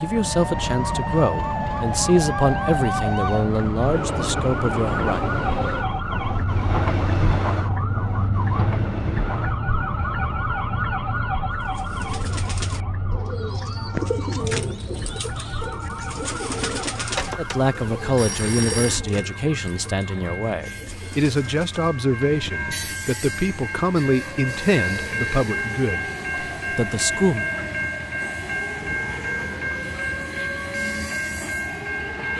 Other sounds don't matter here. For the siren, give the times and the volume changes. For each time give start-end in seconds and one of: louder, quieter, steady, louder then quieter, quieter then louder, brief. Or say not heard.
0.0-32.3 quieter.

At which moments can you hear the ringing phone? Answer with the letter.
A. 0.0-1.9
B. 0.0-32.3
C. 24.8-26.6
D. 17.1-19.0
D.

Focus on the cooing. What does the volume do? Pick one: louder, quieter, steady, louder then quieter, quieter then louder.
louder then quieter.